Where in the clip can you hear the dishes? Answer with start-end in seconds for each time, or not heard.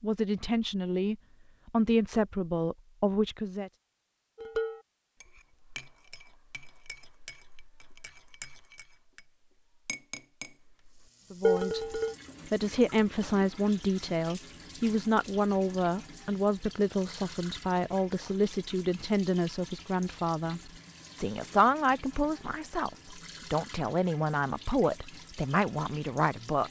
4.3-9.2, 9.8-10.6, 11.4-12.2.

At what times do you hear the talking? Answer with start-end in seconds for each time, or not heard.
0.0-3.7, 11.3-26.6.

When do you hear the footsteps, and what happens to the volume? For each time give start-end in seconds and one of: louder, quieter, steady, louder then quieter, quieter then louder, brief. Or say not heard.
not heard.